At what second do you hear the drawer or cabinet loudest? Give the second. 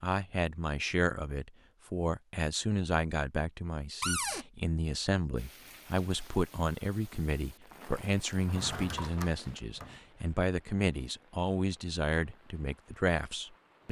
4 s.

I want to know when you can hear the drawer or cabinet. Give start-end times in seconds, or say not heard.
4.0-4.5, 8.4-10.0.